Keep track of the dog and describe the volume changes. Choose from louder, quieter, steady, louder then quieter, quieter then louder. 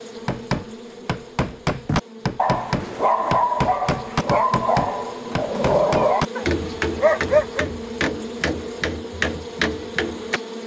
steady.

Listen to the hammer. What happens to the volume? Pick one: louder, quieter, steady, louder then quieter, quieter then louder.
steady.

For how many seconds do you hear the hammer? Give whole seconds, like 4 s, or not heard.
10 s.